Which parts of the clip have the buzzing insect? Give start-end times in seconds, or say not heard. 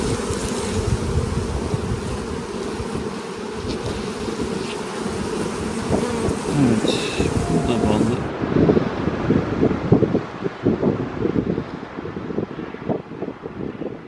0.0-8.3.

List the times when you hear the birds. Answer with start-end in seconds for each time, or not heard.
not heard.